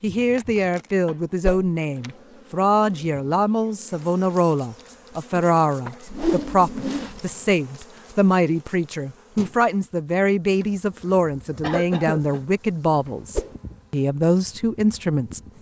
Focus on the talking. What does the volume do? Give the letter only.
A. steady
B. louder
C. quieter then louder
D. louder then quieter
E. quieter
A.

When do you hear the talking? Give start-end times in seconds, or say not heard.
0.0-15.4.